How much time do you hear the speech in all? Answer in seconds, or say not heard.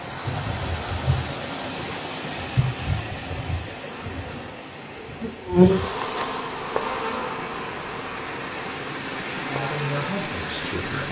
2 s.